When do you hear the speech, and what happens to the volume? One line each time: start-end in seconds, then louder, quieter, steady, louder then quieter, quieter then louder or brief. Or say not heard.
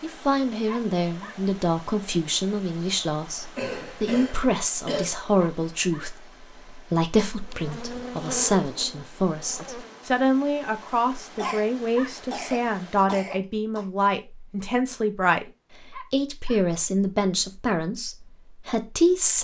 0.0-19.3 steady.